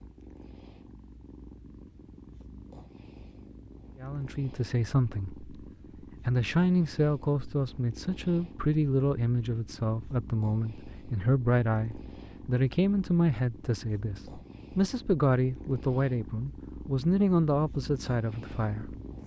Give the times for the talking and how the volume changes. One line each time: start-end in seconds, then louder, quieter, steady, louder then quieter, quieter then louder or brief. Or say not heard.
4.0-5.5 brief
6.2-18.9 steady.